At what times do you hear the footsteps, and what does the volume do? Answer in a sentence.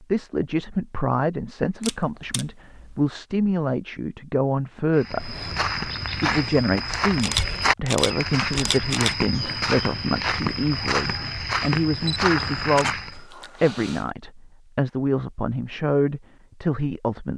The footsteps can be heard from 5.0 to 13.2 s, at a steady volume.